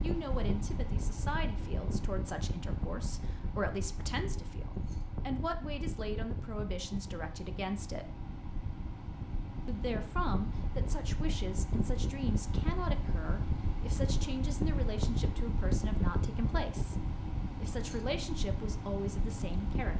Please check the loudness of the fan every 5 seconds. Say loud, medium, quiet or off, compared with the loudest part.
loud, medium, loud, loud.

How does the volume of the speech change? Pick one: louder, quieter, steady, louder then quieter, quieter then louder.
steady.